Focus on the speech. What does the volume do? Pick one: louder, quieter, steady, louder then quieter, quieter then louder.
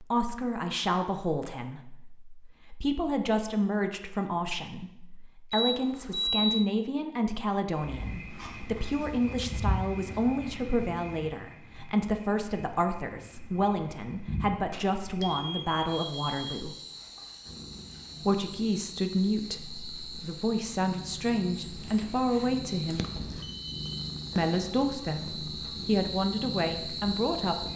steady.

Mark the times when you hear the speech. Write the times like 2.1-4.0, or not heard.
0.0-16.8, 18.2-23.1, 24.4-27.7.